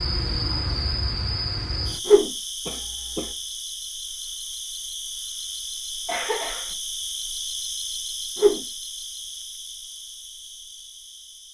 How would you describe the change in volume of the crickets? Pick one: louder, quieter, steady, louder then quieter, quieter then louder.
quieter.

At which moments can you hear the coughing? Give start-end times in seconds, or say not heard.
2.6-3.4, 6.0-6.8.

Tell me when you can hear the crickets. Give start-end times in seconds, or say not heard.
0.0-11.5.